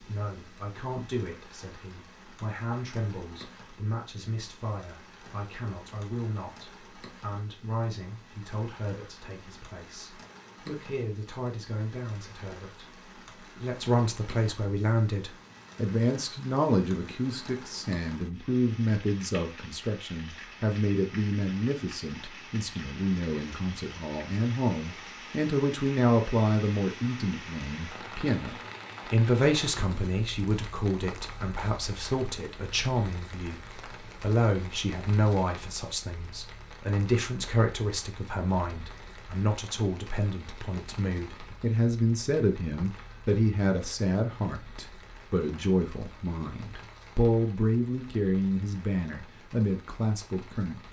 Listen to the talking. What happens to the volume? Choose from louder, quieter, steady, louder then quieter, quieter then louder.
louder.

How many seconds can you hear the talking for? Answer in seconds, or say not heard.
51 s.